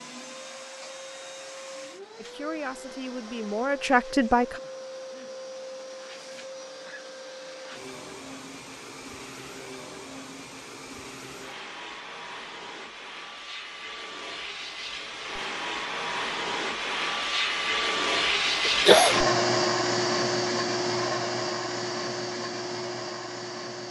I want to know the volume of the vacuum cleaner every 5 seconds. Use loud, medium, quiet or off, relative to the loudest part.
quiet, quiet, quiet, loud, loud.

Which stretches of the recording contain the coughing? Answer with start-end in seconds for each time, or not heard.
18.6-19.2.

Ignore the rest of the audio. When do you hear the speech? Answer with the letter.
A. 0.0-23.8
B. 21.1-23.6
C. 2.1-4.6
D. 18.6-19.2
C.